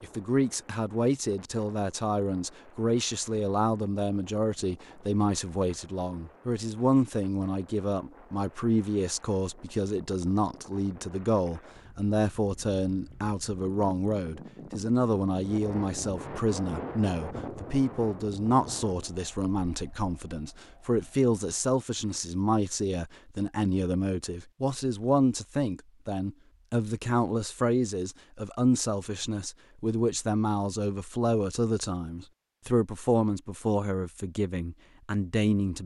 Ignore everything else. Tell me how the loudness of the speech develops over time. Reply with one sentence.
The loudness of the speech stays about the same.